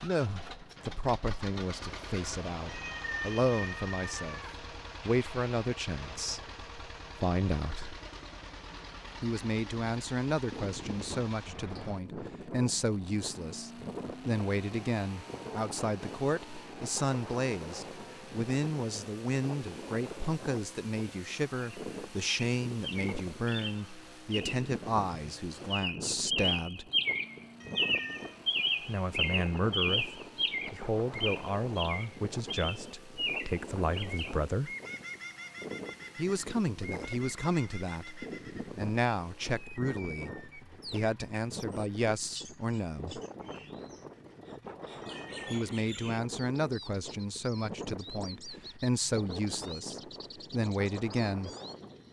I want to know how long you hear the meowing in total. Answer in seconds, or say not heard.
3 s.